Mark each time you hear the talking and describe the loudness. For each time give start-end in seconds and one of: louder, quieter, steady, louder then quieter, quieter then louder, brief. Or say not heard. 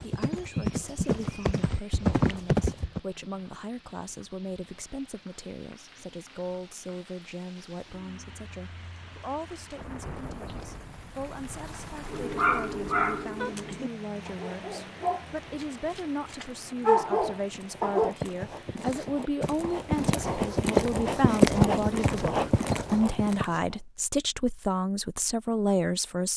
0.0-26.3 louder.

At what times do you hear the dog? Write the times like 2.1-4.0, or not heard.
12.1-18.1.